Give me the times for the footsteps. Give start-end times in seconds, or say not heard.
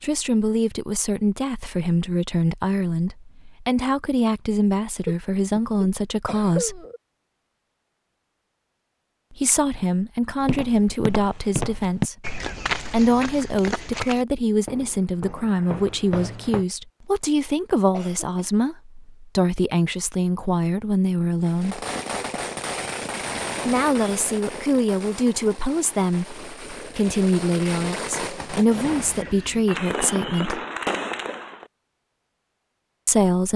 10.4-16.6.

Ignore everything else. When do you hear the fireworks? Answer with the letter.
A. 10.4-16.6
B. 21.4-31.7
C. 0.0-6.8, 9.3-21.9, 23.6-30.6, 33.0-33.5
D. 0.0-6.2
B.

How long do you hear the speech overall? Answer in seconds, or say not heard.
27 s.